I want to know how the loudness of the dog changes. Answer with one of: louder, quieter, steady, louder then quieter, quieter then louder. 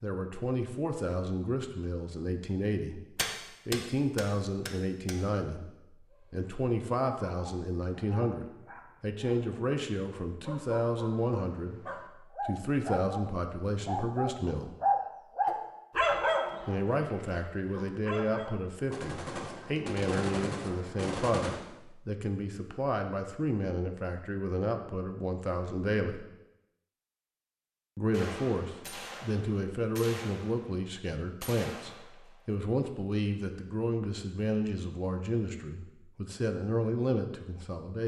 louder then quieter.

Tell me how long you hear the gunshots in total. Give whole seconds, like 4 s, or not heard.
9 s.